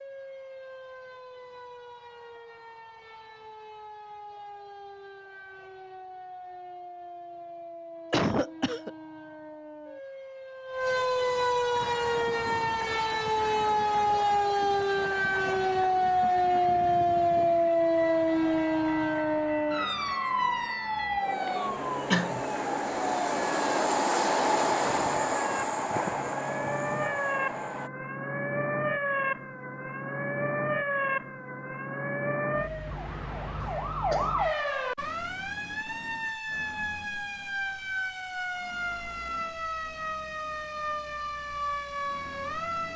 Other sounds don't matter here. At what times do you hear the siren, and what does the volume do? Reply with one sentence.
You can hear the siren from 0.0 to 42.9 s, getting louder then quieter.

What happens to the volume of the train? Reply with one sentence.
The volume of the train goes up.